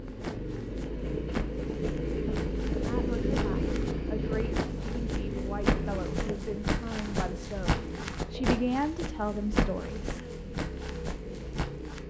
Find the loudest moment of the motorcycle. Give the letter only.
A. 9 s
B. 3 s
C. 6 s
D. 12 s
B.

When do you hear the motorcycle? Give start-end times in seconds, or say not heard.
0.0-12.0.